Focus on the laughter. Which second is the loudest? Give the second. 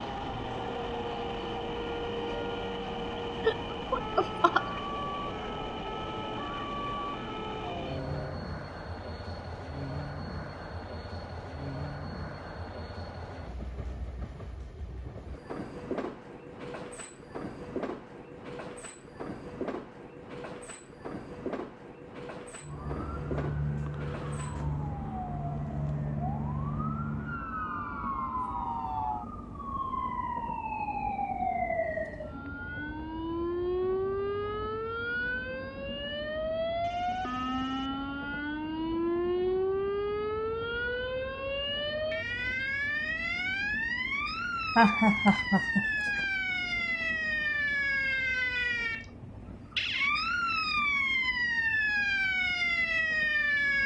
45 s.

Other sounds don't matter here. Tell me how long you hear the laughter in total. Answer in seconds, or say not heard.
3 s.